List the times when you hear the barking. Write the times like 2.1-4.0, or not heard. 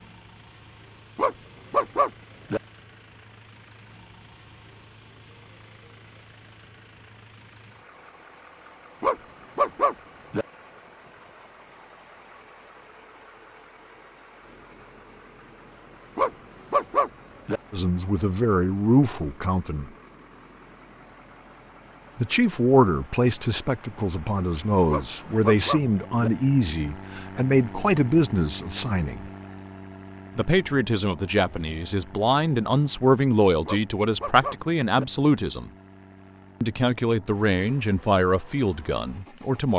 1.1-2.6, 9.0-10.4, 16.1-17.6, 24.9-26.3, 33.6-35.0.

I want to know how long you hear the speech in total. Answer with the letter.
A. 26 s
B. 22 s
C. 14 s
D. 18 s
D.